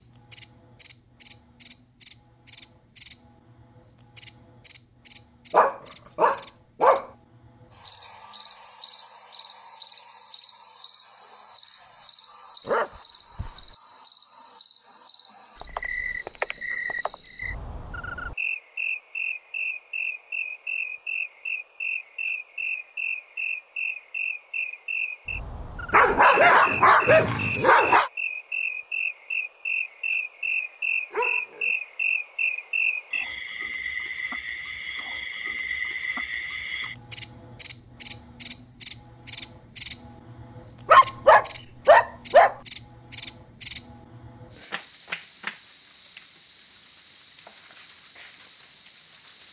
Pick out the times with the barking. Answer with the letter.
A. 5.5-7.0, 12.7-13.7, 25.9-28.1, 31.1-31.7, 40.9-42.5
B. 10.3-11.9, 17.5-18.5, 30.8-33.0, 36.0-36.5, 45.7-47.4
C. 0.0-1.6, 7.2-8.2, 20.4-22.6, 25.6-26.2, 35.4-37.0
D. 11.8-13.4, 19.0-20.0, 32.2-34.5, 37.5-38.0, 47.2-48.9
A.